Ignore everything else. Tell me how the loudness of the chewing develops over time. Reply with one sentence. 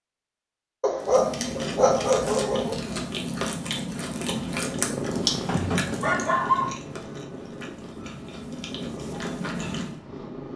The loudness of the chewing goes down, then up.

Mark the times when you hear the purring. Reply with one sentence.
You can hear the purring from 4.2 to 10.5 s.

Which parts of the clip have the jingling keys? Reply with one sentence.
You can't hear the jingling keys here.